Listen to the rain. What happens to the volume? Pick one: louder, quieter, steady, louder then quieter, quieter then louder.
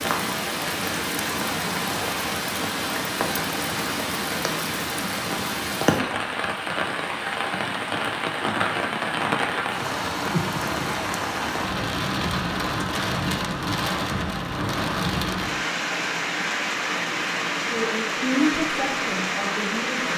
steady.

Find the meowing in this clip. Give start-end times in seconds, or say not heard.
not heard.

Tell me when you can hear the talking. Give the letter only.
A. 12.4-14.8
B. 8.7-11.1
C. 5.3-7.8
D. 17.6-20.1
D.